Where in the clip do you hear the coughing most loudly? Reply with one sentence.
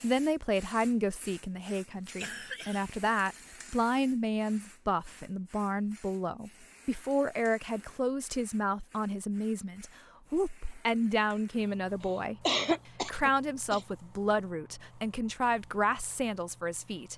The loudest moment of the coughing is at 13 seconds.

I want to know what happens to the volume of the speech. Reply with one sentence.
The volume of the speech stays about the same.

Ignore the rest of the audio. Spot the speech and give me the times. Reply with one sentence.
You can hear the speech from 0.0 to 17.1 s.